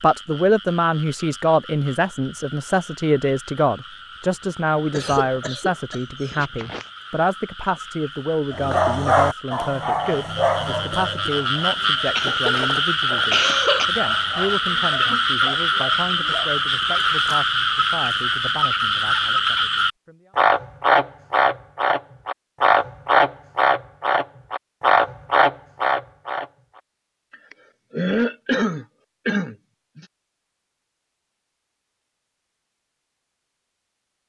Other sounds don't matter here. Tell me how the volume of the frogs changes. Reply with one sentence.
The loudness of the frogs goes up.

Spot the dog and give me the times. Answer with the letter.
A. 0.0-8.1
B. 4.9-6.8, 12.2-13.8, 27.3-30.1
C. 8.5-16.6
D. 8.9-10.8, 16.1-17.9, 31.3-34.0
C.